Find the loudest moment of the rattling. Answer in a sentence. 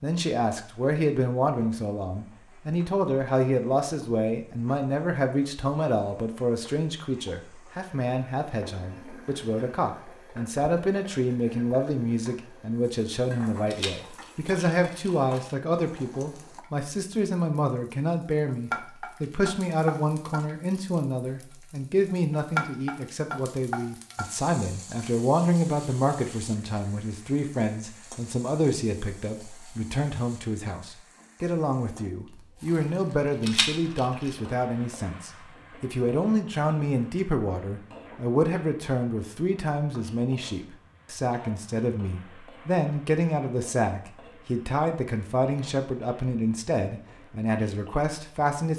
The loudest moment of the rattling is at 34 seconds.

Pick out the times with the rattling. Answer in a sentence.
The rattling can be heard from 13.7 to 15.5 s and from 33.4 to 34.4 s.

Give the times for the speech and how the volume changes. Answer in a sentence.
You can hear the speech from 0.0 to 48.7 s, at a steady volume.